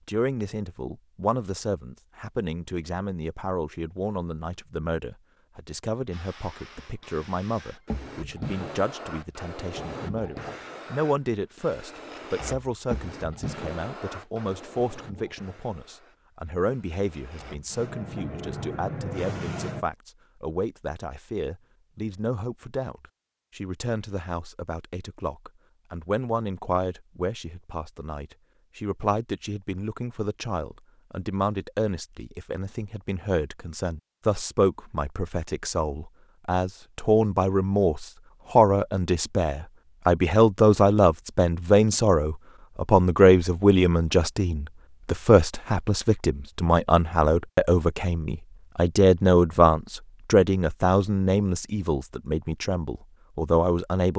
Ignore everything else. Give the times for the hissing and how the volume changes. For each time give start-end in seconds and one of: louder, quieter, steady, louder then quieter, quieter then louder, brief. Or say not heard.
6.1-19.9 quieter then louder.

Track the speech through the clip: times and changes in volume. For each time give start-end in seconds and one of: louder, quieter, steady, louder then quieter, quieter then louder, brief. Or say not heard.
0.1-54.1 louder.